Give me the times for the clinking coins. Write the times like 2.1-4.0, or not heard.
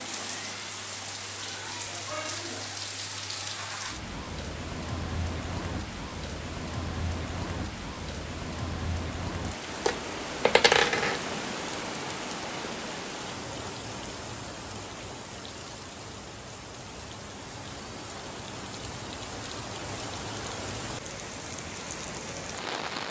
9.8-11.2.